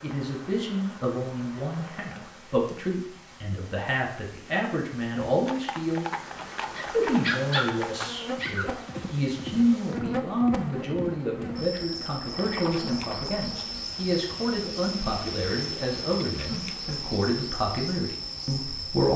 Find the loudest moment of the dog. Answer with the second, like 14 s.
7 s.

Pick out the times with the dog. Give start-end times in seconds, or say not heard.
6.5-8.8.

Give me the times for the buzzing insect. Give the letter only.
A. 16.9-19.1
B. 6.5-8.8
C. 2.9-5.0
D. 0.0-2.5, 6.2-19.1
D.